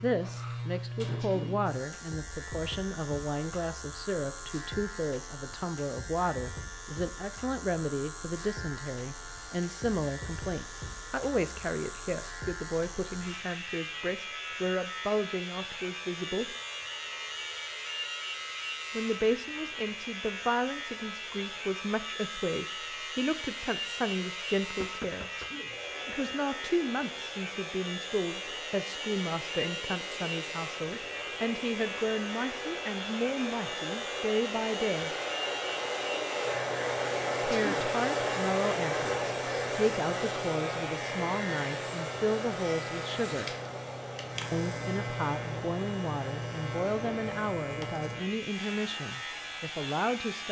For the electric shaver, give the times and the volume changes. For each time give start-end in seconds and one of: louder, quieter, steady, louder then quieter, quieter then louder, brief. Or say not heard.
0.0-50.4 steady.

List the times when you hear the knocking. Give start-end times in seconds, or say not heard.
24.8-26.1.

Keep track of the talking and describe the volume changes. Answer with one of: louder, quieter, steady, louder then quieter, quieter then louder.
steady.